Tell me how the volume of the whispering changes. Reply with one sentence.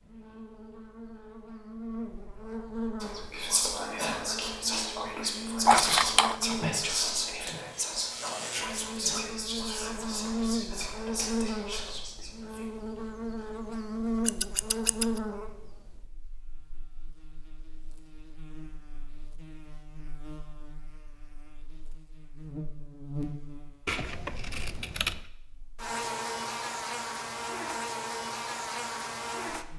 The loudness of the whispering goes down.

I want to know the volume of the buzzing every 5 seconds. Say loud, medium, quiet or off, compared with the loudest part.
medium, medium, loud, medium, medium, loud.